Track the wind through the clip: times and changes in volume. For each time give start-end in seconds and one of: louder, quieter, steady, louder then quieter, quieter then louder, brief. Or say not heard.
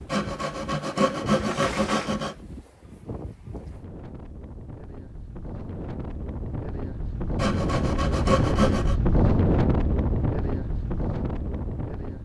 0.0-12.2 louder.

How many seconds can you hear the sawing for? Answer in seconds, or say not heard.
4 s.